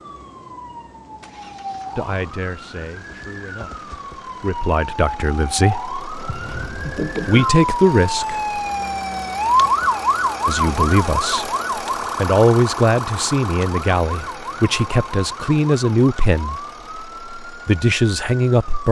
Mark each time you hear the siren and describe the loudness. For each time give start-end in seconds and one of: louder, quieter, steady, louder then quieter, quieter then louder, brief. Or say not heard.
0.0-18.8 louder then quieter.